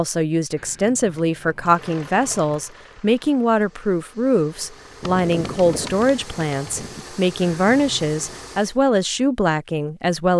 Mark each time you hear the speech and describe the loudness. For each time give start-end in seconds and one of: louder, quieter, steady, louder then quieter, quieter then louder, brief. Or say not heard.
0.0-10.3 steady.